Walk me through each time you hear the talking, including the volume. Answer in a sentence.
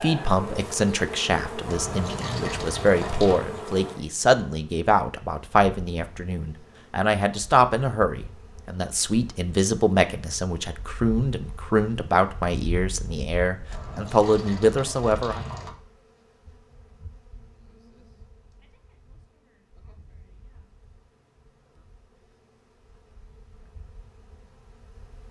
You can hear the talking from 0.0 to 15.4 s, at a steady volume.